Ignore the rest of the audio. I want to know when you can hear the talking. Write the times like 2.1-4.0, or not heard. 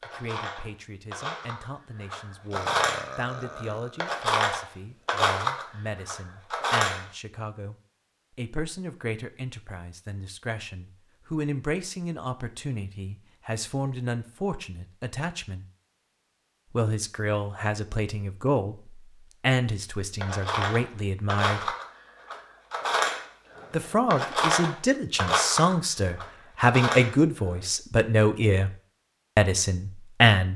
0.0-7.8, 8.3-15.7, 16.7-21.8, 23.7-28.7, 29.4-30.5.